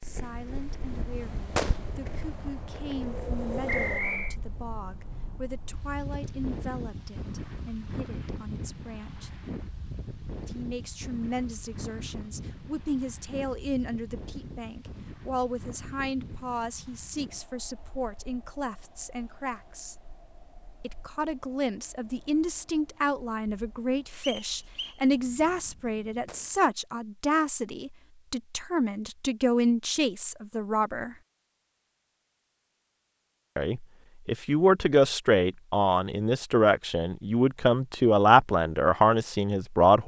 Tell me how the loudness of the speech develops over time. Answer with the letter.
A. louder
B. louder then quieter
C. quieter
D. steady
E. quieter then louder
A.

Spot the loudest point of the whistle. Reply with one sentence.
The volume of the whistle peaks at 4 seconds.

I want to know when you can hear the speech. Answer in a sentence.
You can hear the speech from 0.0 to 9.3 s, from 10.4 to 19.9 s, from 20.8 to 31.1 s and from 33.5 to 40.0 s.